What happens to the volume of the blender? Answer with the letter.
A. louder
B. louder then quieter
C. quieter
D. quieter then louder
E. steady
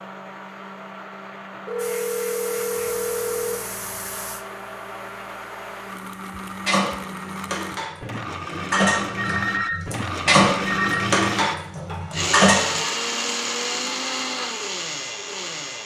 A.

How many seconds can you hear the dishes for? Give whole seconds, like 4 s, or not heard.
6 s.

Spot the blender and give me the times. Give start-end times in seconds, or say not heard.
0.0-15.8.